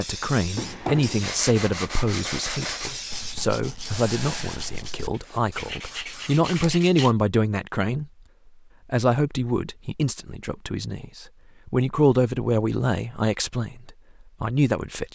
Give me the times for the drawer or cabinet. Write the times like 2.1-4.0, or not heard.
0.6-1.4.